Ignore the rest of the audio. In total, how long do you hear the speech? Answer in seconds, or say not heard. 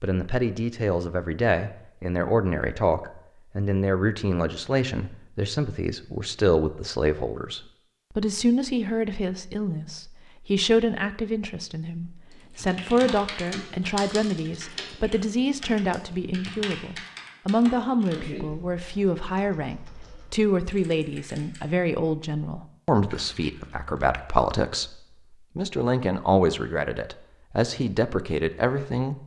29 s.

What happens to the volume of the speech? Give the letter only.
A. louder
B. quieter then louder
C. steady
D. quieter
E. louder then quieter
C.